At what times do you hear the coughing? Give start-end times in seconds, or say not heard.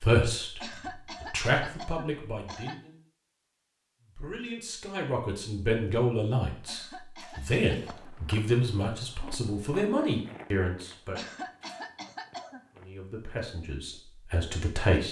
0.6-2.8, 6.7-8.2, 11.2-12.7.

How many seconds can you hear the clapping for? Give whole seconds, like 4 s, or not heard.
not heard.